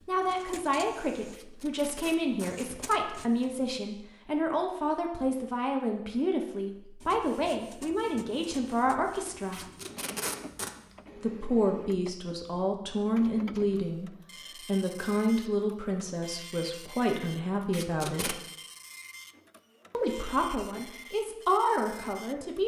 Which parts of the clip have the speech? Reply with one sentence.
You can hear the speech from 0.1 to 9.7 s, from 11.2 to 18.4 s and from 19.9 to 22.6 s.